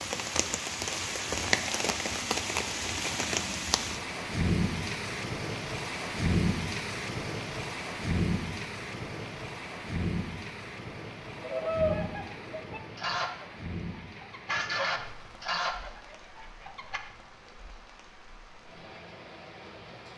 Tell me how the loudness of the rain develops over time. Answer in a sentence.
The loudness of the rain goes down.